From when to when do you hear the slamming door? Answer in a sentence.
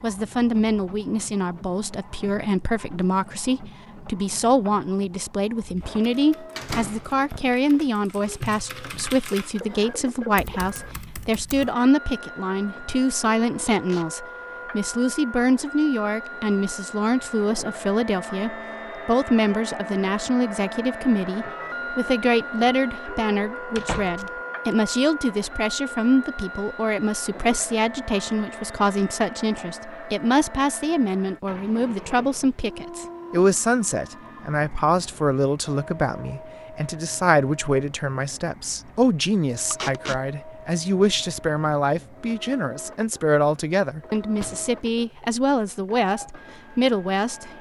You can hear the slamming door from 6.5 to 7.5 s, from 23.8 to 24.2 s and from 44.3 to 44.9 s.